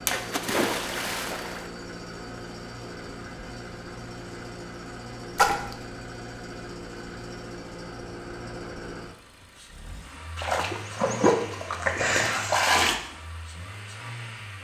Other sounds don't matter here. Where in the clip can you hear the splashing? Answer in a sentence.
You can hear the splashing from 0.1 to 1.6 s, from 5.3 to 5.8 s and from 10.3 to 13.0 s.